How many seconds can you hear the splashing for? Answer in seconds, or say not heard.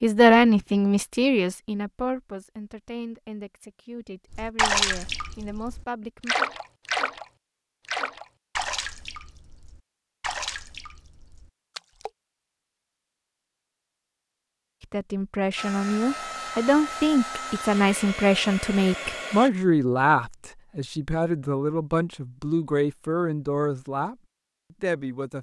7 s.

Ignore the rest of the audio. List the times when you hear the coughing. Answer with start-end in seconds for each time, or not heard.
not heard.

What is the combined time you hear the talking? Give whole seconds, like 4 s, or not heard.
17 s.